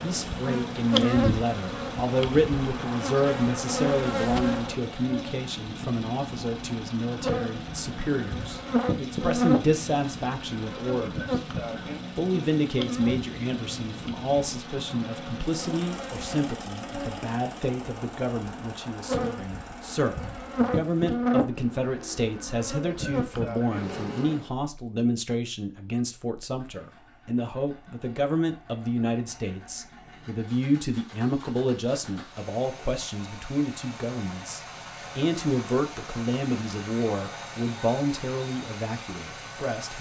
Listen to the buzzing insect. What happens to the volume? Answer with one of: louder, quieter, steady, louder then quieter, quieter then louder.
quieter then louder.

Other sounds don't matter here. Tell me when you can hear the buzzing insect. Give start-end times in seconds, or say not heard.
0.0-24.5.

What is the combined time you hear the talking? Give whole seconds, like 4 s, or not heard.
39 s.